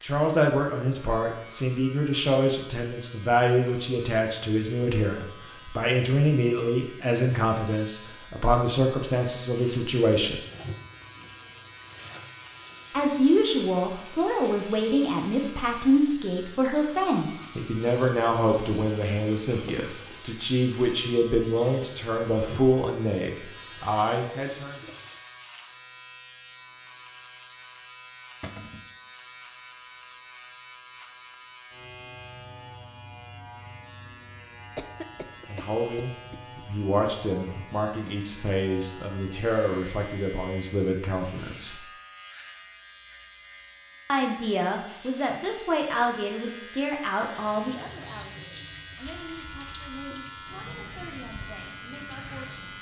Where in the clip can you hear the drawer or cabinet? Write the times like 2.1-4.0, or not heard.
28.4-28.9.